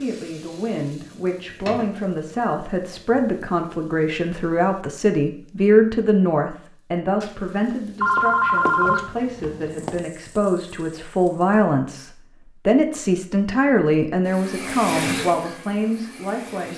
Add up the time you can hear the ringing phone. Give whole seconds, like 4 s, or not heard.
2 s.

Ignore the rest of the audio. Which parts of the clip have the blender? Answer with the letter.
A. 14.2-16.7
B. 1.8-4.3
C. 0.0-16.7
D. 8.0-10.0
A.